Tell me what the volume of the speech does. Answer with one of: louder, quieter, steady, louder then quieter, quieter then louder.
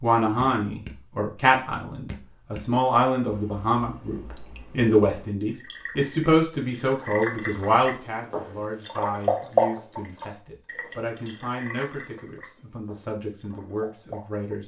quieter.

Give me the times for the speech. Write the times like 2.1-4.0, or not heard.
0.0-14.6.